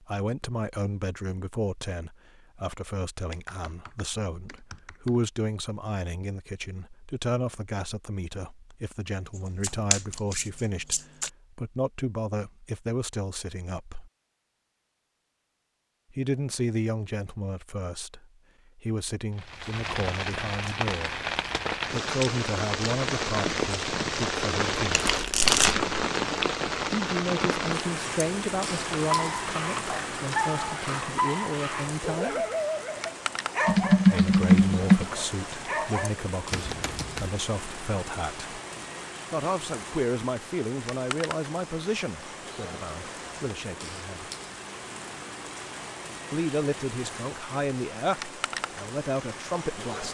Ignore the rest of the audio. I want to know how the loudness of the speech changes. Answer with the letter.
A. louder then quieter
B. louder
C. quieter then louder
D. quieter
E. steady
E.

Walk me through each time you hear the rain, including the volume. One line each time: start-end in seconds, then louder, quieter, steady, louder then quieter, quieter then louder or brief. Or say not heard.
19.4-50.0 quieter.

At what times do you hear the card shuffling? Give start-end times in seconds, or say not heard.
9.6-11.3, 24.9-25.9, 36.5-37.3.